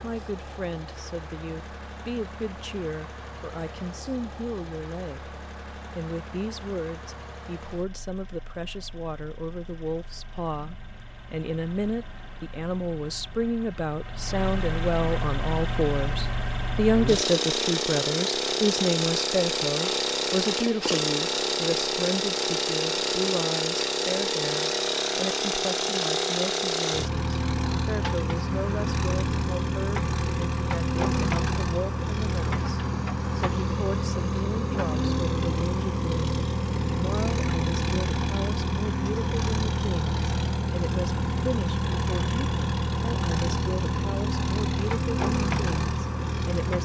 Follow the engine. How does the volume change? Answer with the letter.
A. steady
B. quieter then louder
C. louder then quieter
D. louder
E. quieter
D.